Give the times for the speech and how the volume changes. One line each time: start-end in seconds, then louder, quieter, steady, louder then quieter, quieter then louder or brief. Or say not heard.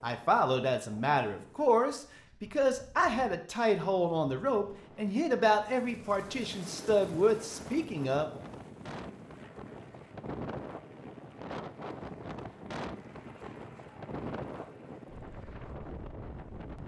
0.0-8.4 steady.